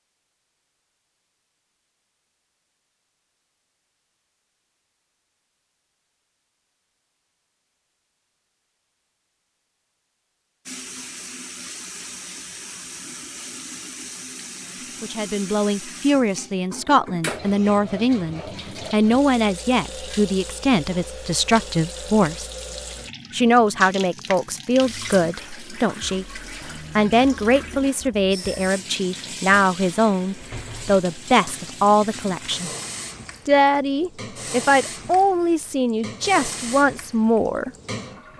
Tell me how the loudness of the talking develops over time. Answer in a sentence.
The loudness of the talking stays about the same.